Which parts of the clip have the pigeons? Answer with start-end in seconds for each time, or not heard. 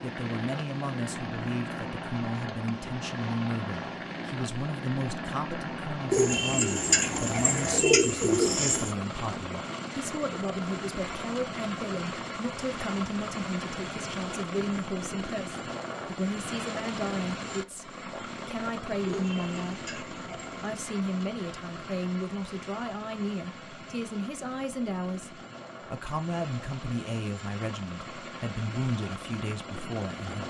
6.1-8.9, 19.1-20.7.